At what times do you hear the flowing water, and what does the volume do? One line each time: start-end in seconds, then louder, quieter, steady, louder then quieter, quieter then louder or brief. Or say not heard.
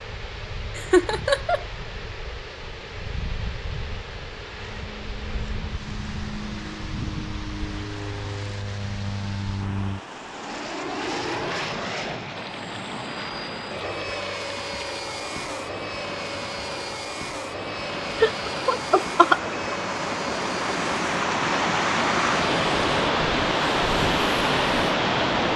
0.0-25.5 louder.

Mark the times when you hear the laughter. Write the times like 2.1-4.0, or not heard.
0.8-1.6, 18.2-19.6.